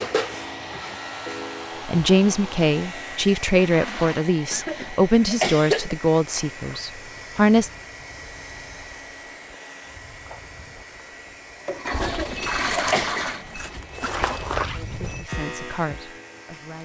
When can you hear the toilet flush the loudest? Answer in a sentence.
The loudest moment of the toilet flush is at 13 seconds.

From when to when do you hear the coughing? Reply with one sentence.
You can hear the coughing from 4.5 to 6.0 s and from 12.0 to 13.2 s.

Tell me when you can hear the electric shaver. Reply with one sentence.
You can hear the electric shaver from 0.0 to 3.2 s and from 15.2 to 16.8 s.